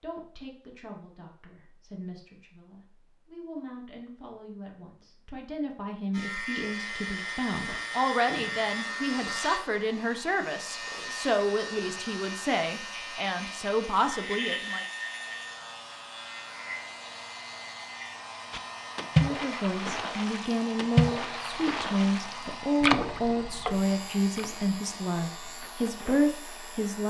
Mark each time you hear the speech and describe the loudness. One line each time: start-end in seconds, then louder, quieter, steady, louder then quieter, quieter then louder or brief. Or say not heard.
0.0-14.8 louder
19.2-27.0 steady.